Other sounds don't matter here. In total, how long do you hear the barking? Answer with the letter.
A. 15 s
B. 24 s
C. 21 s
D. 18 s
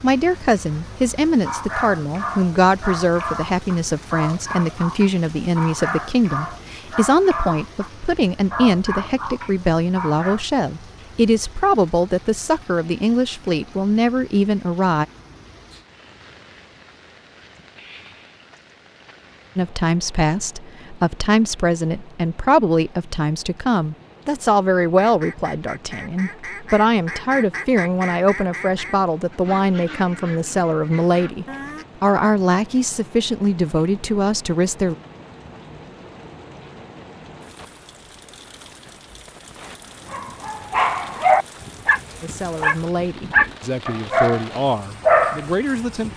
A.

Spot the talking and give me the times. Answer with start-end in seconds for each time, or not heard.
0.0-15.1, 19.6-35.0, 42.2-46.1.